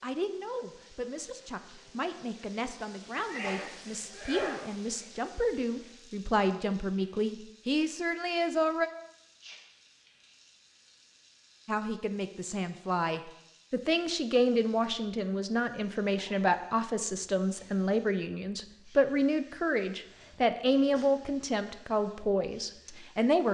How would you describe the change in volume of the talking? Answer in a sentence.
The volume of the talking goes up.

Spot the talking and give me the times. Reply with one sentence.
The talking can be heard from 0.0 to 8.9 s and from 11.7 to 23.4 s.